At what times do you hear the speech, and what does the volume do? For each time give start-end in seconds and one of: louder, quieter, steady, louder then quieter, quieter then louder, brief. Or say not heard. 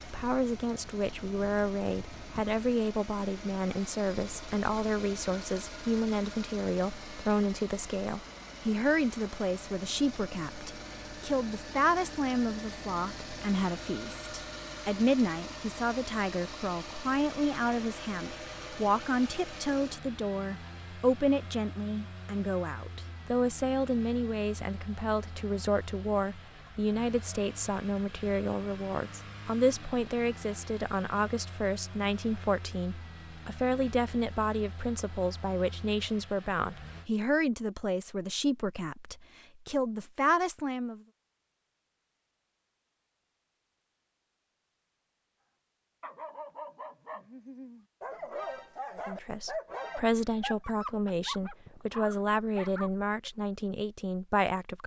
0.0-41.0 steady
49.0-54.8 steady.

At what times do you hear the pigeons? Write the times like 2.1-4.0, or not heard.
not heard.